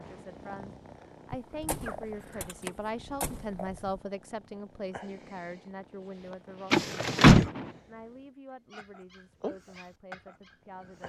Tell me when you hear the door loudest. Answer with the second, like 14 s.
7 s.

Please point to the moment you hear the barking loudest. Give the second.
10 s.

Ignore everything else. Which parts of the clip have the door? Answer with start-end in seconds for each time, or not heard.
1.3-4.0, 6.7-7.5.